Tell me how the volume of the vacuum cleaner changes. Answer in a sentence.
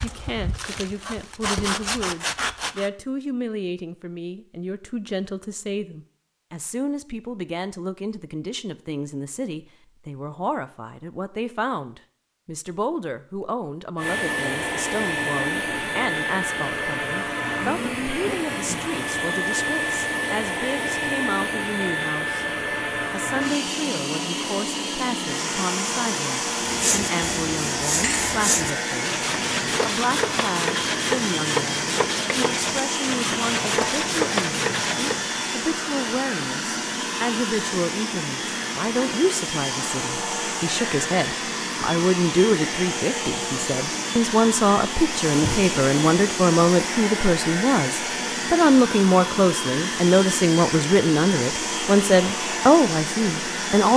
The loudness of the vacuum cleaner stays about the same.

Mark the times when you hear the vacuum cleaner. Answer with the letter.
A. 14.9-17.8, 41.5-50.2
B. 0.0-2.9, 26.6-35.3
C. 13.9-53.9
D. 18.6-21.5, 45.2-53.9
C.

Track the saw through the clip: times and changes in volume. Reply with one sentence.
The saw can be heard briefly from 0.0 to 2.9 s; and from 26.6 to 35.3 s, at a steady volume.